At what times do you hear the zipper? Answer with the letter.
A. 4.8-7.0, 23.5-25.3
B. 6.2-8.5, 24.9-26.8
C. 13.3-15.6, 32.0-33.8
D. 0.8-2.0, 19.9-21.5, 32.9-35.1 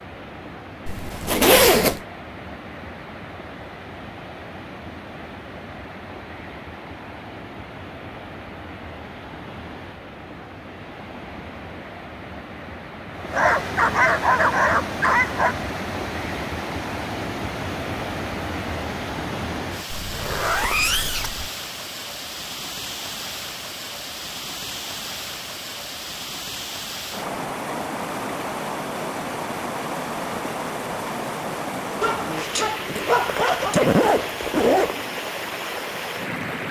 D.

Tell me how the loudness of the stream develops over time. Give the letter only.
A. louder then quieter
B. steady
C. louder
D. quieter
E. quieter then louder
C.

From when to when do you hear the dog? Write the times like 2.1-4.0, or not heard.
13.3-15.6, 32.0-33.8.